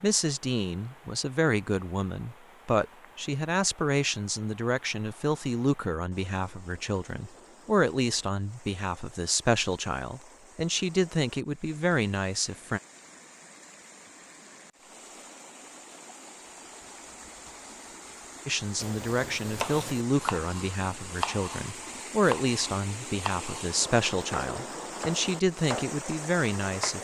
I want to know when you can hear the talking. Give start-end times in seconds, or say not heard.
0.0-12.8, 18.4-26.9.